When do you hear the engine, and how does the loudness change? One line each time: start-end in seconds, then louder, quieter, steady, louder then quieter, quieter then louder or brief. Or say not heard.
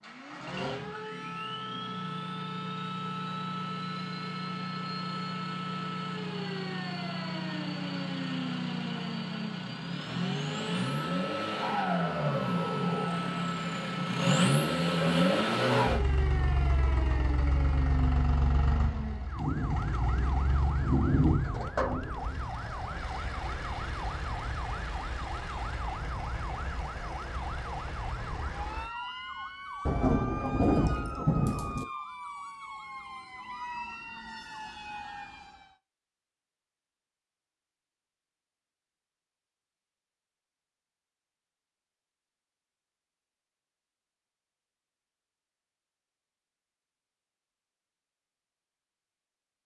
0.0-28.9 louder then quieter.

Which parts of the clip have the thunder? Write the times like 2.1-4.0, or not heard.
19.4-21.7, 29.9-31.9.